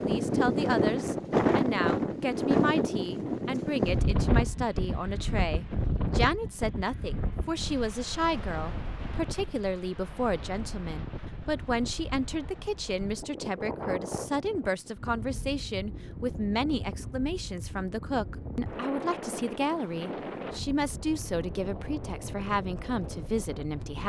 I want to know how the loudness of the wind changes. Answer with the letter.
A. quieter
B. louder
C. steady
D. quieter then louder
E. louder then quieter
A.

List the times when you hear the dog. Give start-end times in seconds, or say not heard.
not heard.